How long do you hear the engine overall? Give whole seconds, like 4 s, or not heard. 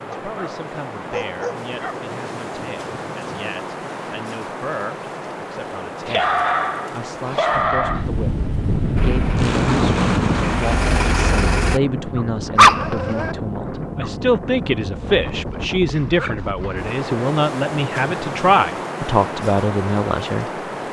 3 s.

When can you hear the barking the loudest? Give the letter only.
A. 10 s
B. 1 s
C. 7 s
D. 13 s
D.